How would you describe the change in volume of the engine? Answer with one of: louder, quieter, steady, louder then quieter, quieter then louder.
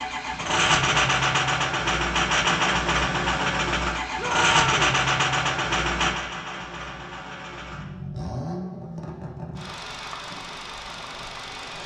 quieter.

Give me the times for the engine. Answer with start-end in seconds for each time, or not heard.
0.0-11.8.